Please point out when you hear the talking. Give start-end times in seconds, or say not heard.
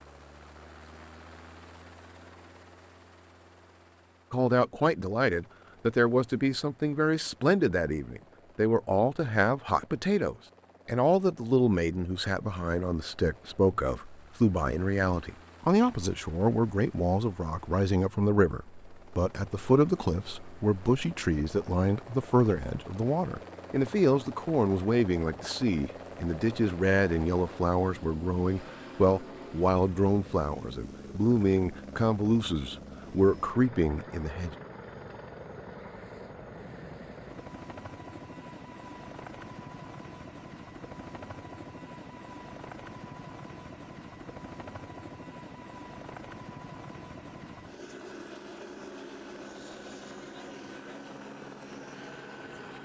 4.3-34.5.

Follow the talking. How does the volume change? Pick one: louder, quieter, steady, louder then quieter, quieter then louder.
steady.